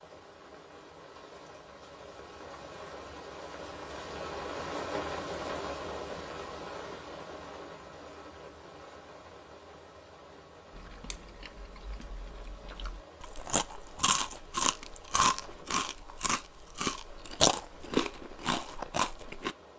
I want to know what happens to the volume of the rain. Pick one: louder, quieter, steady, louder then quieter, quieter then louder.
louder then quieter.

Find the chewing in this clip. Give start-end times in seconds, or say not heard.
10.8-19.6.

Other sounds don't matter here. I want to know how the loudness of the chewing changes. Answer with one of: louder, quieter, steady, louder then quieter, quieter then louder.
louder.